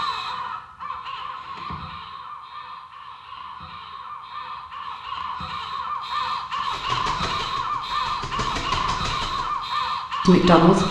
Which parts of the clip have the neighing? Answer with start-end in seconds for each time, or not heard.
not heard.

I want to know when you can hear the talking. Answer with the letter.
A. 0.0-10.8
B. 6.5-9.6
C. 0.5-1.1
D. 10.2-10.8
D.